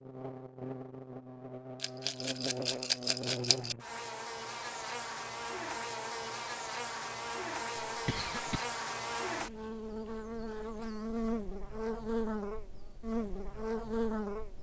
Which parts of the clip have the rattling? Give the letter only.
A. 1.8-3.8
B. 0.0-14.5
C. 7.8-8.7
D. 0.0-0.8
A.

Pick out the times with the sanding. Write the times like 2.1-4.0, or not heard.
not heard.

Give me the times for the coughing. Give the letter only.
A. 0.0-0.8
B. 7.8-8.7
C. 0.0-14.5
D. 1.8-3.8
B.